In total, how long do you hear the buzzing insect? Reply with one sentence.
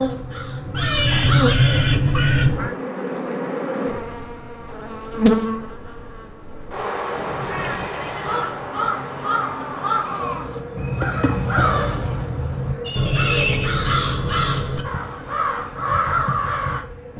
You can hear the buzzing insect for 17 seconds altogether.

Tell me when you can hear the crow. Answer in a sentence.
The crow can be heard from 0.0 to 2.8 s and from 7.4 to 17.1 s.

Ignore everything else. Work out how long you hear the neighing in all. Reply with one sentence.
The neighing can be heard for 4 seconds in total.